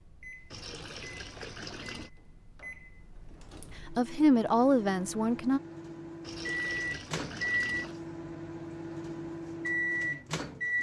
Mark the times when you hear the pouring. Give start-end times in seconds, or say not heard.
0.5-2.1, 6.2-8.0.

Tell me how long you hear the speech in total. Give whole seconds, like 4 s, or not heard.
2 s.